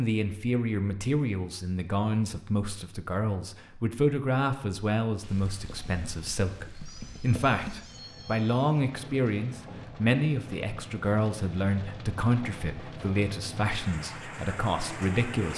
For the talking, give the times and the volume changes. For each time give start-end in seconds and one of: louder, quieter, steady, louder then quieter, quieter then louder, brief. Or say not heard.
0.0-15.5 steady.